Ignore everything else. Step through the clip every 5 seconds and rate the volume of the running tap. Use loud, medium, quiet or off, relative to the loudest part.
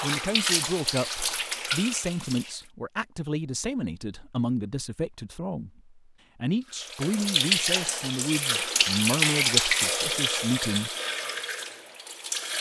medium, loud, medium.